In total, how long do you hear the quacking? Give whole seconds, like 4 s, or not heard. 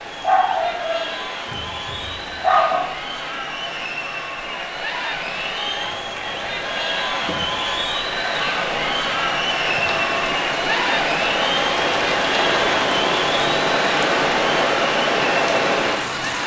not heard.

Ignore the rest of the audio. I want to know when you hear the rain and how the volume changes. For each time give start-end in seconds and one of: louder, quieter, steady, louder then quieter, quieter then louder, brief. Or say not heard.
0.0-16.4 louder.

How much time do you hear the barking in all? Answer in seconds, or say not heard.
3 s.